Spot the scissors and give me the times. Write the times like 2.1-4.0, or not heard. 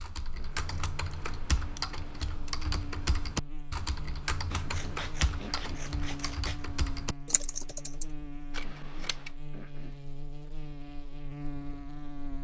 0.6-2.4, 4.5-6.7, 8.5-9.3.